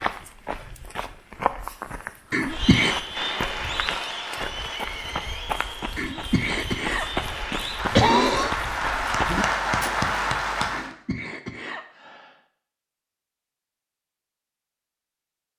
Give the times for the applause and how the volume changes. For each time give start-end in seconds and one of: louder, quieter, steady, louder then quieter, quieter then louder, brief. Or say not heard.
2.5-10.9 quieter then louder.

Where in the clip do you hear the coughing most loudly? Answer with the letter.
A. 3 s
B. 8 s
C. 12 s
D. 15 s
B.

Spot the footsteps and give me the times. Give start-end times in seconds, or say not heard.
0.0-10.1.